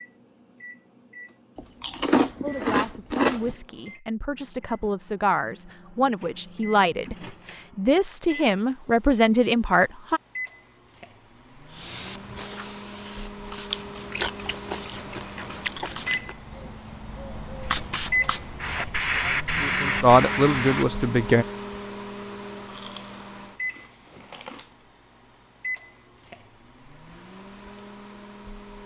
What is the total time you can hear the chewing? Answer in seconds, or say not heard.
7 s.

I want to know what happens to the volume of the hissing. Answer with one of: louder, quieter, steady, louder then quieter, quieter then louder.
quieter then louder.